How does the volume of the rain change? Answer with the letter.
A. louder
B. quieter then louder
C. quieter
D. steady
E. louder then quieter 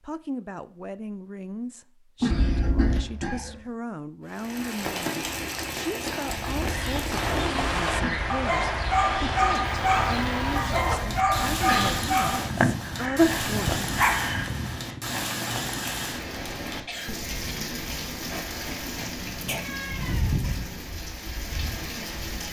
D.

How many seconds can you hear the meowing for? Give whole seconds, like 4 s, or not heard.
4 s.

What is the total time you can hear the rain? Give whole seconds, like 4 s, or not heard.
18 s.